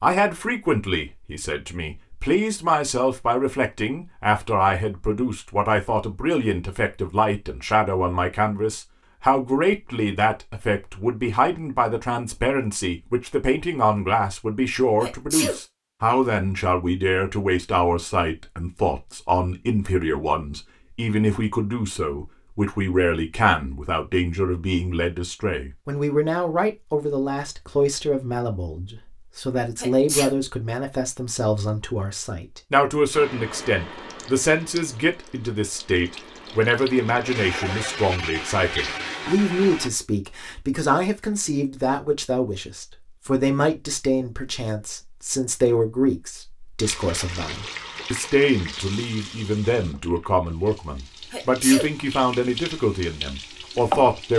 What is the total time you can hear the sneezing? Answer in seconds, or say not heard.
2 s.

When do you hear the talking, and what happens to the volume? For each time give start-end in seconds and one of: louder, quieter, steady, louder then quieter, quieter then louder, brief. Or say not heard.
0.0-54.3 steady.